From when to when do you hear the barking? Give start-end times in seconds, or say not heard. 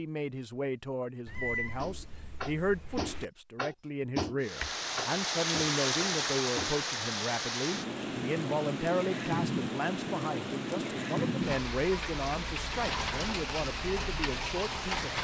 not heard.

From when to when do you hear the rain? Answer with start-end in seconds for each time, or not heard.
4.4-15.1.